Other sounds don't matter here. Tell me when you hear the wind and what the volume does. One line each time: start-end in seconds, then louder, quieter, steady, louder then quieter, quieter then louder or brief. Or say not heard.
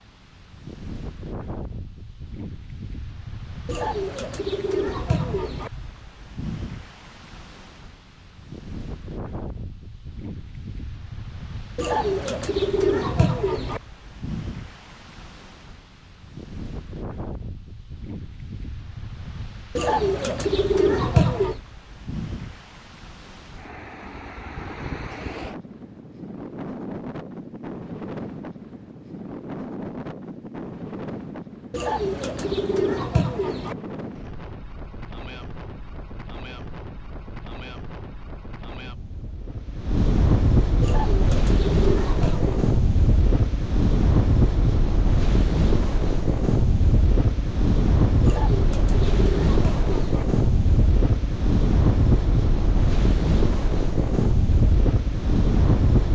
0.0-56.1 louder.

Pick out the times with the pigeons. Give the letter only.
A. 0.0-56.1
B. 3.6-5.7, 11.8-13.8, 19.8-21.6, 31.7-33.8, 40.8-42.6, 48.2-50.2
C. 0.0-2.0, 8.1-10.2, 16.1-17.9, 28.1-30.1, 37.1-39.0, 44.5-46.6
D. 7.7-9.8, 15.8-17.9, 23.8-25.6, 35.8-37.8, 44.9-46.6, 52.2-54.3
B.